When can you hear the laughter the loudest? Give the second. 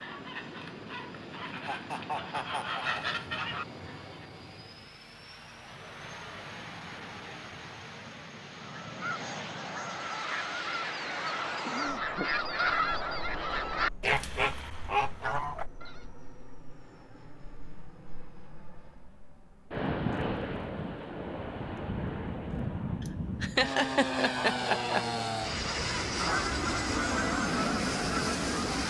24 s.